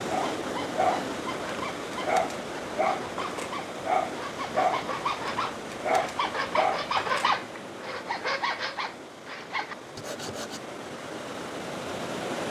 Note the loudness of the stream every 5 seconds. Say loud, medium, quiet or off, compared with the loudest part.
loud, medium, loud.